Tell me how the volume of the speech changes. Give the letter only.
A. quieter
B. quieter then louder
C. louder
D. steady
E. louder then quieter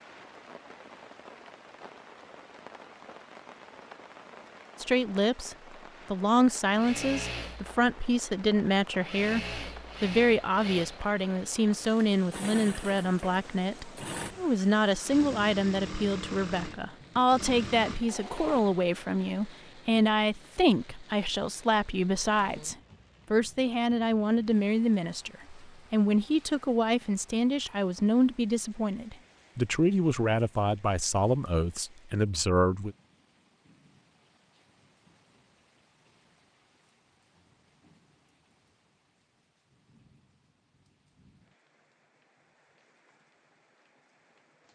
D.